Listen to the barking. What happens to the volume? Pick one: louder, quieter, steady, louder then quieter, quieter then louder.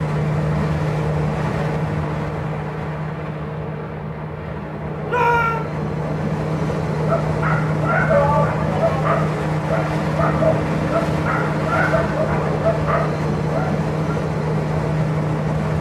steady.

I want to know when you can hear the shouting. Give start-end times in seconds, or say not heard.
5.0-5.7, 8.1-9.0.